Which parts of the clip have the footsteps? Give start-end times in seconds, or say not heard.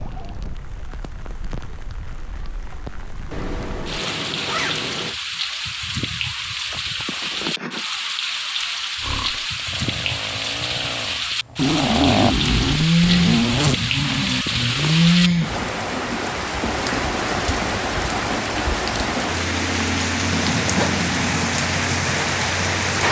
not heard.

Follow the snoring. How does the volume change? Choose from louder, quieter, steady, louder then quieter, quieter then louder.
louder.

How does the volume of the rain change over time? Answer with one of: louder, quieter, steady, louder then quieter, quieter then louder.
louder.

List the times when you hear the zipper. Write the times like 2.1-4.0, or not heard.
3.3-5.2, 11.6-13.8, 20.3-21.5.